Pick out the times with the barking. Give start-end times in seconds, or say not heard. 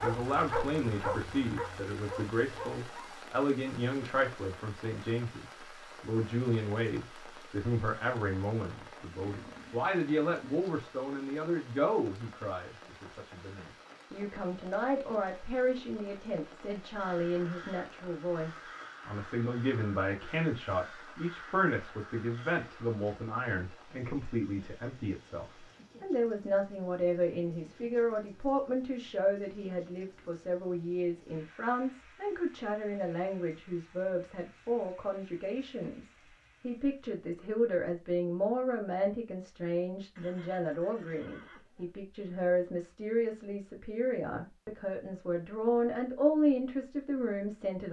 0.0-3.2.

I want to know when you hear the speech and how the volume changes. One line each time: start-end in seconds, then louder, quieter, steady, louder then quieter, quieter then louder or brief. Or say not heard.
0.0-47.8 steady.